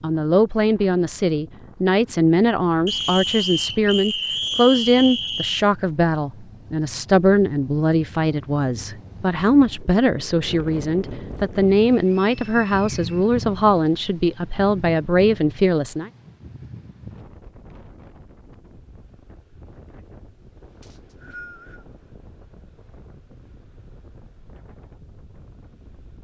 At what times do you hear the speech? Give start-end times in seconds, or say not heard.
0.0-16.1.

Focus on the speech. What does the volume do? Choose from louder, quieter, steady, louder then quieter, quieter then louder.
steady.